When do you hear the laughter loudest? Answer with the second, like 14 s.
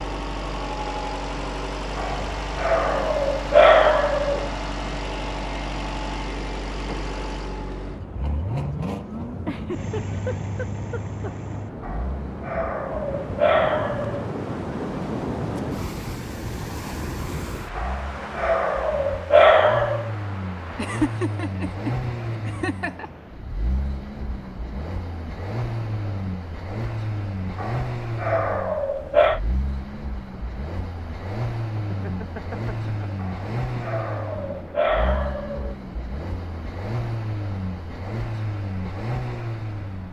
21 s.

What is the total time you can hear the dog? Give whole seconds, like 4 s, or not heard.
12 s.